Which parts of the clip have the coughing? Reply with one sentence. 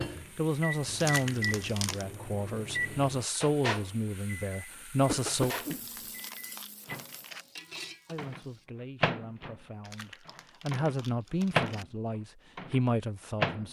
The coughing can be heard from 5.0 to 6.0 s.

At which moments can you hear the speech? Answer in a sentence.
The speech can be heard from 0.3 to 5.5 s and from 8.1 to 13.6 s.